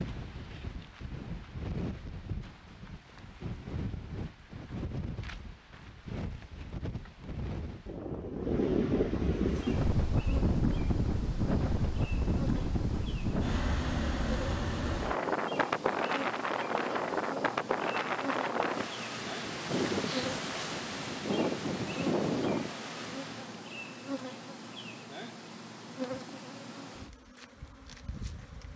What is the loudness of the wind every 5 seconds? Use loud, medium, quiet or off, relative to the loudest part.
medium, loud, loud, loud, loud, off.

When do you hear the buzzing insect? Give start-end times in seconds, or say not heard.
9.4-28.7.